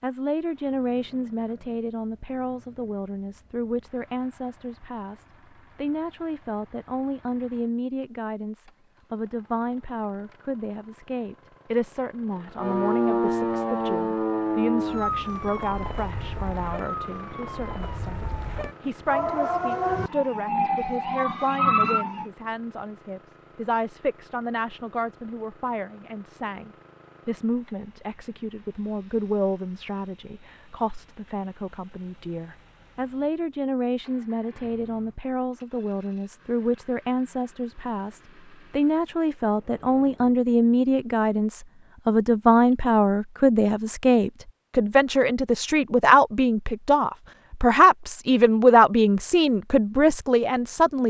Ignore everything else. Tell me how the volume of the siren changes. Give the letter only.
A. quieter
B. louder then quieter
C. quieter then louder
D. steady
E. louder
C.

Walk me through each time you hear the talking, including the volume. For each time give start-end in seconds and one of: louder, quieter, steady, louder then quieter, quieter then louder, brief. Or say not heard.
0.0-51.0 louder.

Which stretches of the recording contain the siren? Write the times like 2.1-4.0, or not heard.
12.6-22.2.